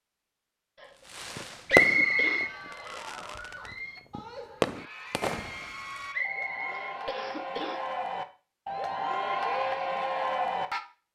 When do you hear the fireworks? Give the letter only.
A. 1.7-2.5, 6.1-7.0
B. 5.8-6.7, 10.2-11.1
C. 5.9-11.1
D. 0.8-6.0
D.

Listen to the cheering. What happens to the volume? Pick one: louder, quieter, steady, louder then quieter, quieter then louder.
louder.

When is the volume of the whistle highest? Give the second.
2 s.